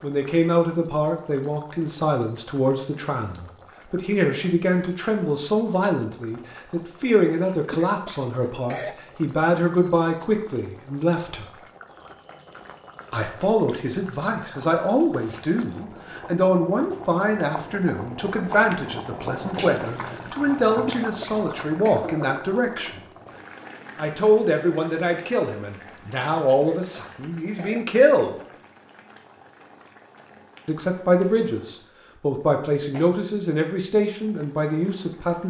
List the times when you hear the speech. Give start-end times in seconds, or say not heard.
0.0-11.4, 13.1-23.0, 23.9-28.4, 30.6-35.4.